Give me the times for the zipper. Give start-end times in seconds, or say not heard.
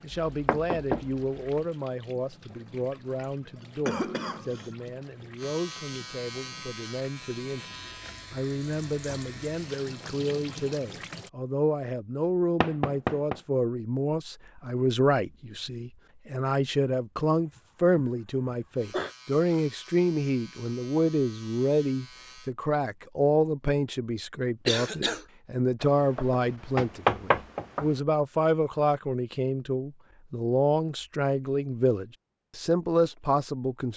not heard.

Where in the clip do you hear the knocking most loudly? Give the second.
27 s.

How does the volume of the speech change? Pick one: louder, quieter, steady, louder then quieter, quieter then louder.
louder.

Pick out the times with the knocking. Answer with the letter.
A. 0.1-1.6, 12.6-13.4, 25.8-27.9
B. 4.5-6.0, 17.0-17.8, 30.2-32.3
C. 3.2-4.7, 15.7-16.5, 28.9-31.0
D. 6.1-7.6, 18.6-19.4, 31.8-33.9
A.